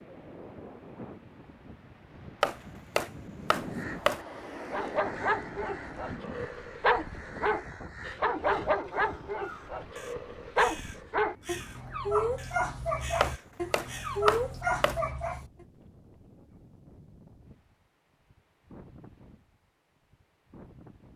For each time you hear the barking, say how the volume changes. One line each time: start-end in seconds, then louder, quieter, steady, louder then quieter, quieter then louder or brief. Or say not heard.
4.5-15.4 steady.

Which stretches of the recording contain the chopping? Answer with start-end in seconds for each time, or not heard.
2.4-4.2, 13.2-15.0.